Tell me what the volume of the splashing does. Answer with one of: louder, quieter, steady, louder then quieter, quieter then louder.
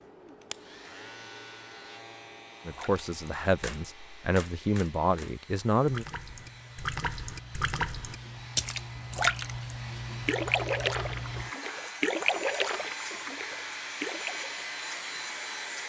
louder then quieter.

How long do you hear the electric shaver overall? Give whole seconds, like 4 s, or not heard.
16 s.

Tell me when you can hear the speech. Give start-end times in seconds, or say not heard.
2.6-6.0.